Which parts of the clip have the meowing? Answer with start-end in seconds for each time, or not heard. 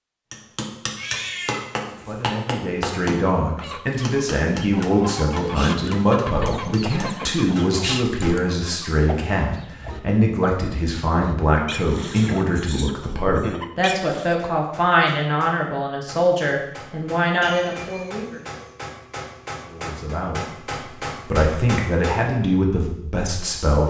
0.9-2.4, 17.4-18.8.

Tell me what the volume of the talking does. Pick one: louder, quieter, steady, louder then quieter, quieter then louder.
steady.